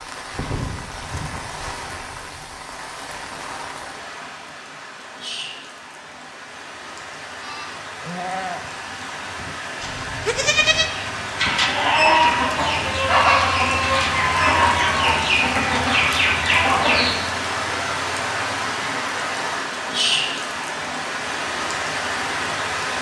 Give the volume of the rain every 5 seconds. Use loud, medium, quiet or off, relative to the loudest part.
medium, medium, loud, loud, loud.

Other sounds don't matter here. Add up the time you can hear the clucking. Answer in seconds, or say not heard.
6 s.